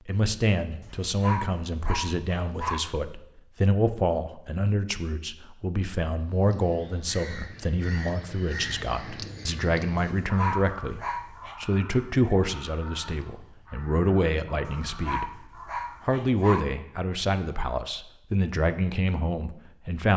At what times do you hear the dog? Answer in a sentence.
The dog can be heard from 0.8 to 2.8 s, from 9.9 to 11.6 s and from 14.7 to 16.6 s.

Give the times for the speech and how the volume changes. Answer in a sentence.
The speech can be heard from 0.1 to 20.1 s, at a steady volume.